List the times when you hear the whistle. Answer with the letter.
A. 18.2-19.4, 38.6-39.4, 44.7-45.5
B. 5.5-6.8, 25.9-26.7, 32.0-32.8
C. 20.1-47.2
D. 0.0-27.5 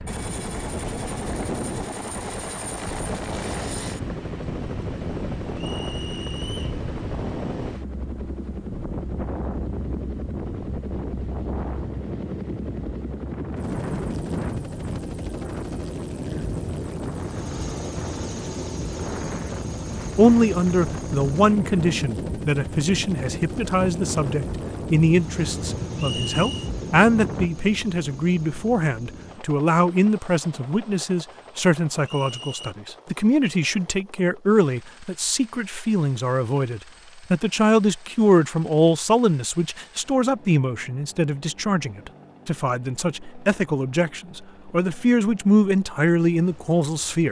B.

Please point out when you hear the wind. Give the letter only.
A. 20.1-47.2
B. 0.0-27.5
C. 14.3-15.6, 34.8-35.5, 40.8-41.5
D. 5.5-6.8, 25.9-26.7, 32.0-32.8
B.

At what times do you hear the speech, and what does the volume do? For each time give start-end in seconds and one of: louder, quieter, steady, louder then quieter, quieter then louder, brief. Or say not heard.
20.1-47.2 steady.